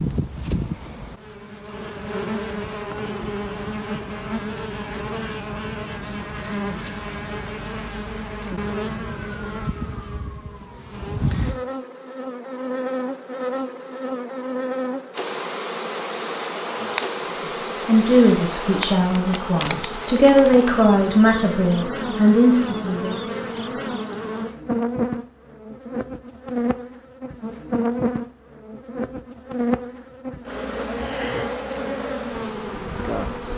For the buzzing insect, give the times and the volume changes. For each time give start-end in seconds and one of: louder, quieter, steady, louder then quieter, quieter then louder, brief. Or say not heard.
0.0-33.5 steady.